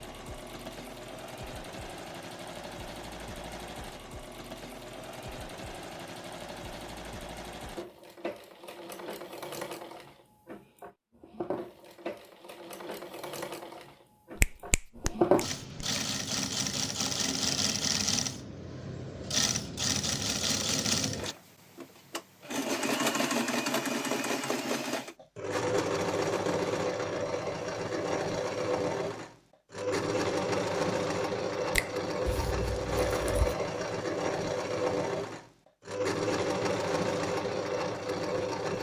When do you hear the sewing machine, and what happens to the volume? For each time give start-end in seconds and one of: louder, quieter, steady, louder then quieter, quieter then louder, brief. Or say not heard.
0.0-38.7 louder.